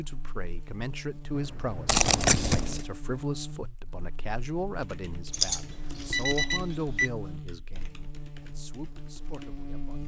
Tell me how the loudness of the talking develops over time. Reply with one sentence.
The loudness of the talking goes down.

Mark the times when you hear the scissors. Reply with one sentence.
You can hear the scissors from 1.9 to 2.9 s and from 5.3 to 6.5 s.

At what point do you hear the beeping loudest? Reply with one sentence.
The volume of the beeping peaks at 6 seconds.